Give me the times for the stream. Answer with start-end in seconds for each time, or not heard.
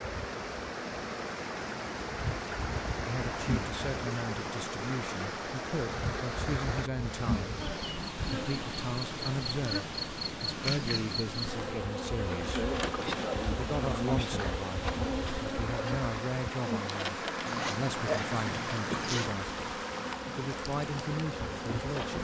0.0-22.1.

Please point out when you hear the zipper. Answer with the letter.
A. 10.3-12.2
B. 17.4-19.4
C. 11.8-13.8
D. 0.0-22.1
B.